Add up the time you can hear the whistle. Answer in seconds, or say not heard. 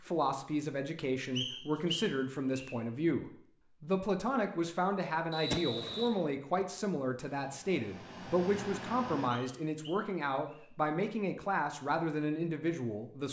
4 s.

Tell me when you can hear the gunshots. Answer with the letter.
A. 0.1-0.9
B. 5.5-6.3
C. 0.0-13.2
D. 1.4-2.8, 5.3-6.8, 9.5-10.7
B.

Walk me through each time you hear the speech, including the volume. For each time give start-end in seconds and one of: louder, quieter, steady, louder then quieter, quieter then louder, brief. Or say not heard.
0.0-13.2 steady.